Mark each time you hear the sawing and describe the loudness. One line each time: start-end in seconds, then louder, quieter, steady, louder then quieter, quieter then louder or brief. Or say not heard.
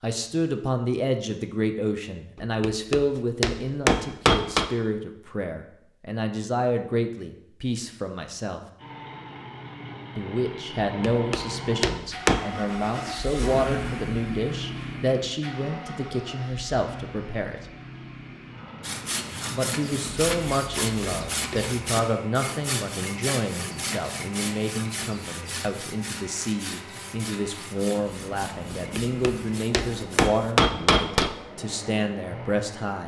18.8-30.6 quieter.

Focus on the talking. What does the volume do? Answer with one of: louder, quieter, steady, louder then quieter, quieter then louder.
steady.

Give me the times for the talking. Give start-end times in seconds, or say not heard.
0.0-8.6, 10.2-17.6, 19.5-33.0.